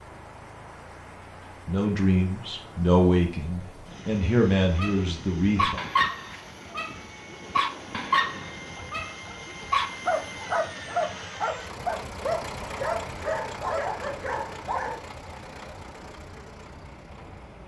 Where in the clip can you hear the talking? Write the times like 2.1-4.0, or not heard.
1.6-5.8.